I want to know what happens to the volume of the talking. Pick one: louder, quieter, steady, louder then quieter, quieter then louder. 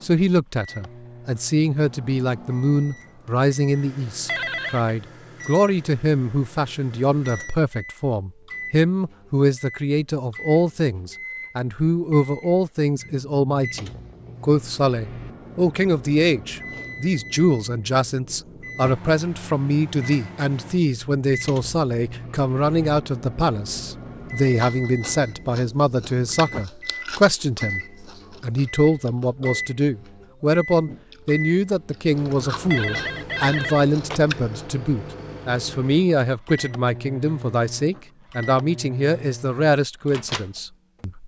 steady.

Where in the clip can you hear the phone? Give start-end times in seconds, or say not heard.
4.2-5.0, 32.7-34.2.